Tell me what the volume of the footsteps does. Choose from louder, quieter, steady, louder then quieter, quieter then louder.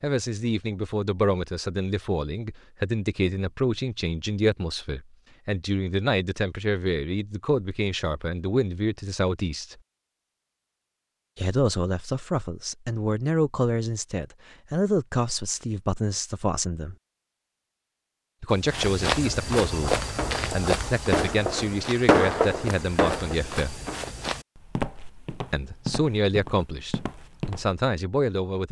quieter.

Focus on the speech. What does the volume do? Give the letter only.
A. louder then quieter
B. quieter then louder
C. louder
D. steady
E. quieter
D.